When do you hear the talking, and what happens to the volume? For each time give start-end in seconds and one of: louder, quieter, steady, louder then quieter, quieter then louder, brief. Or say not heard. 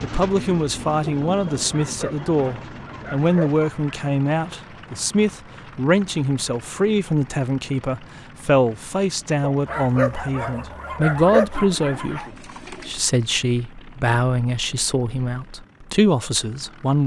0.0-17.0 steady.